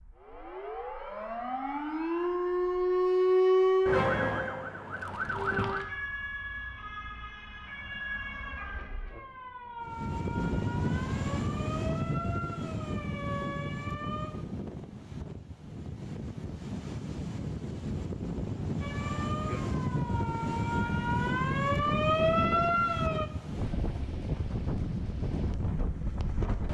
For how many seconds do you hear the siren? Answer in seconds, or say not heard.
19 s.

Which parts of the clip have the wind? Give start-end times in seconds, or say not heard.
9.8-26.6.